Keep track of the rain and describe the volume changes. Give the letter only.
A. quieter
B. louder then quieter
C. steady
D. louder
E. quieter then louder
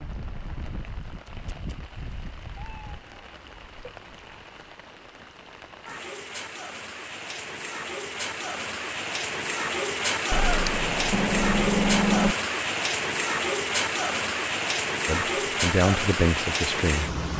D.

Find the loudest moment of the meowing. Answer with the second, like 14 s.
12 s.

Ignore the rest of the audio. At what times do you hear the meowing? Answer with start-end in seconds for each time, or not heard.
2.6-4.5, 10.3-12.3.